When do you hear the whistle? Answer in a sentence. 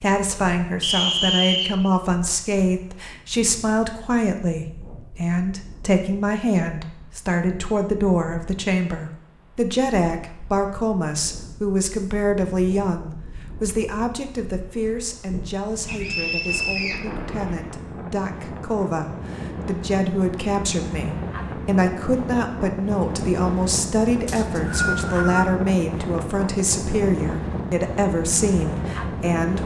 The whistle can be heard from 0.8 to 1.9 s, from 15.8 to 17.0 s and from 24.2 to 25.4 s.